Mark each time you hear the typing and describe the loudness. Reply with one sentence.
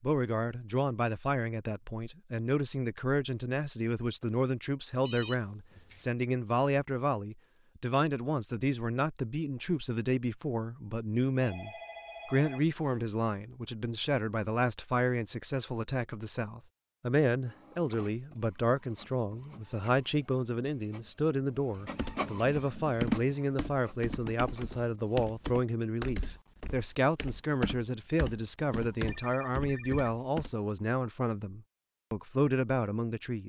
You can hear the typing from 21.8 to 30.6 s, getting quieter.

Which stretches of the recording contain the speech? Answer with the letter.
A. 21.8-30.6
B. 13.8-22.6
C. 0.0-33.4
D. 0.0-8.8
C.